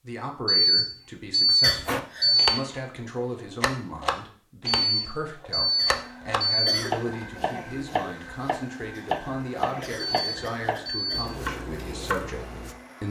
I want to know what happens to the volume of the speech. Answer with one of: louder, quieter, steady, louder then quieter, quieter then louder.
steady.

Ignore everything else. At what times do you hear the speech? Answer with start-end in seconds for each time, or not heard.
0.0-13.0.